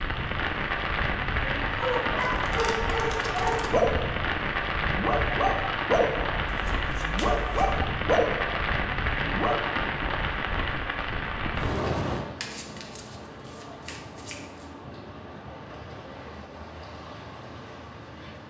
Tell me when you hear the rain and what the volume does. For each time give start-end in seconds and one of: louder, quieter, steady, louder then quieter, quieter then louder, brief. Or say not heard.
0.0-18.4 quieter.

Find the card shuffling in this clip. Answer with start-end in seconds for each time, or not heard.
2.1-3.7, 6.5-7.8, 12.4-14.7.